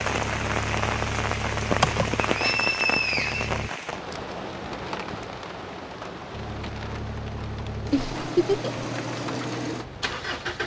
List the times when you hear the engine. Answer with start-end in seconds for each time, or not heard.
0.0-3.7, 6.3-10.6.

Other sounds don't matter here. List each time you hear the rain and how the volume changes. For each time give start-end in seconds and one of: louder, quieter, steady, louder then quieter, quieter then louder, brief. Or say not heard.
0.0-10.6 quieter.